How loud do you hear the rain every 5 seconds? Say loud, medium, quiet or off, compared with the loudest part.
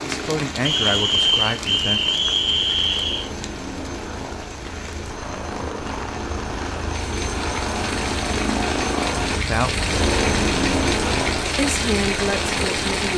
medium, medium, loud.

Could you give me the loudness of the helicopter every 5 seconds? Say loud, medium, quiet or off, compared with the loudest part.
medium, loud, loud.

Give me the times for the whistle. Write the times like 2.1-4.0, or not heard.
0.6-3.3.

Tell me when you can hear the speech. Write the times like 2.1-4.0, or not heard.
0.0-2.0, 9.1-9.9, 11.6-13.1.